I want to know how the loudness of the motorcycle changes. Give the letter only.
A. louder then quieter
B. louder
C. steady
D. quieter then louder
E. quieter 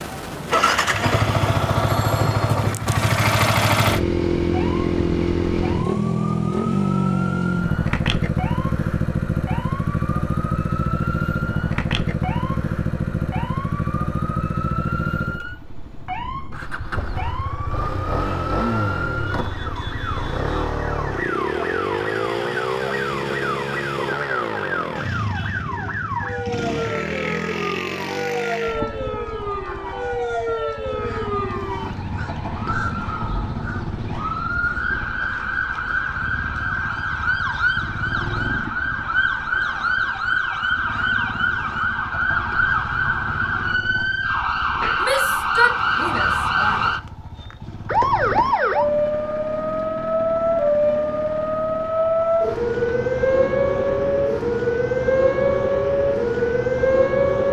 E.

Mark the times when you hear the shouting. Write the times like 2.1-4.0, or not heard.
45.0-46.8.